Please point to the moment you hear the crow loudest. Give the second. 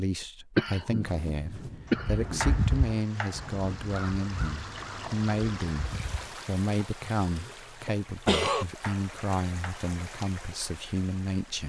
3 s.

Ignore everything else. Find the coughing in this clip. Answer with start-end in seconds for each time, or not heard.
0.6-2.6, 7.2-8.7.